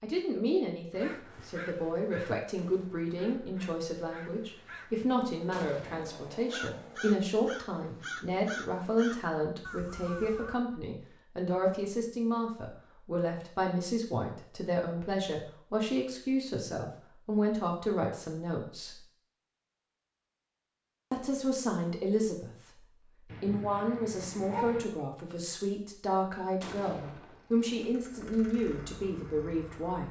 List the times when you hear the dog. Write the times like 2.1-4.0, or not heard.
23.3-24.9.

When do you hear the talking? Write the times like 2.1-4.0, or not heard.
0.0-19.0, 21.1-22.5, 23.4-30.0.